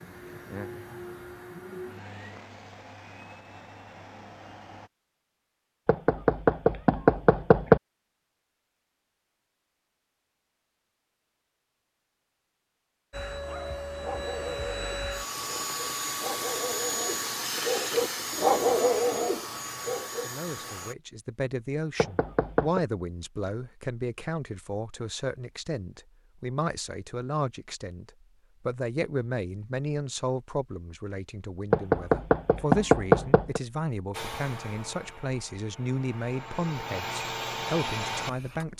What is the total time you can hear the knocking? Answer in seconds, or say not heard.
5 s.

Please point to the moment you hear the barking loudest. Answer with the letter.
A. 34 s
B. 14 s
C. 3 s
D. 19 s
D.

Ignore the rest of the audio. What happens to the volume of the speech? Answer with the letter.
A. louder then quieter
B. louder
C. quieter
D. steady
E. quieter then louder
D.